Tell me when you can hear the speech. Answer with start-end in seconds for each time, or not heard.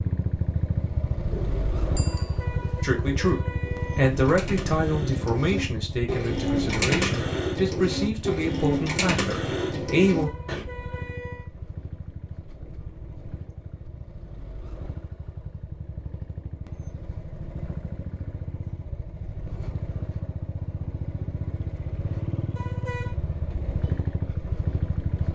2.8-10.3.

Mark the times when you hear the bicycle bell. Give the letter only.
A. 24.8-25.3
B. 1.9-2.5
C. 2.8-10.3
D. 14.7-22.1
B.